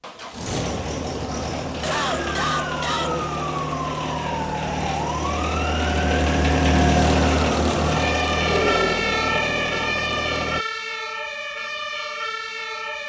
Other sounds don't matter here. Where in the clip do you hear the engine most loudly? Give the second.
7 s.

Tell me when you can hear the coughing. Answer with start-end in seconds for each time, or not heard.
1.2-3.1.